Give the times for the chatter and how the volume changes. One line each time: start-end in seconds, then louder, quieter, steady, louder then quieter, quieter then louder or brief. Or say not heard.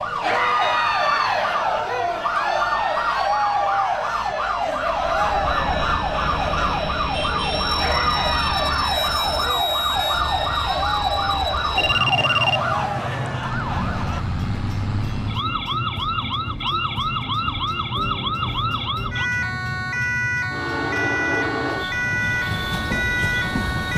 0.1-14.2 quieter.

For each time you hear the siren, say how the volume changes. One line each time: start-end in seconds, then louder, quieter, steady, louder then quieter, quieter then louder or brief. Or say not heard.
0.0-23.9 steady.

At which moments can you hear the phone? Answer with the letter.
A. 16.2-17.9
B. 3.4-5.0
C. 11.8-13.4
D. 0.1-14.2
C.